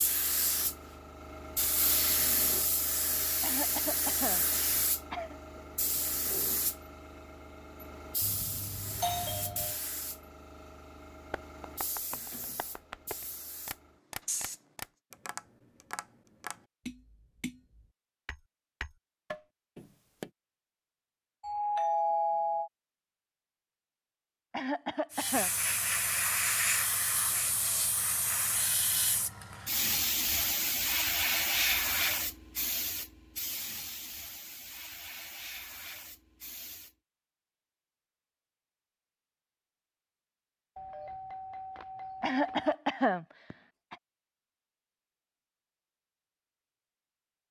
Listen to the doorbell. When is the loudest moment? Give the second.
22 s.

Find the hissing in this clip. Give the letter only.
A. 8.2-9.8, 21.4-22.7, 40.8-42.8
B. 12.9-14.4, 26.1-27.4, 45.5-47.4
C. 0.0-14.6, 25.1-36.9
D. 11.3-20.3
C.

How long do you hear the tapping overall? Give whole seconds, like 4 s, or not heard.
9 s.